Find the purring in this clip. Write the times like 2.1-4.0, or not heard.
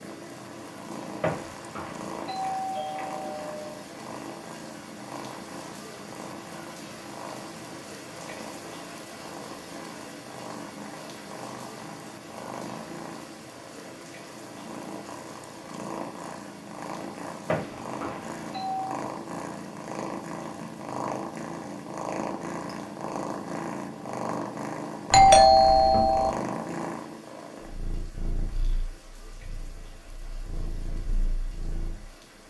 0.0-32.1.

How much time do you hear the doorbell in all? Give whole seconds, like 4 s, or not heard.
5 s.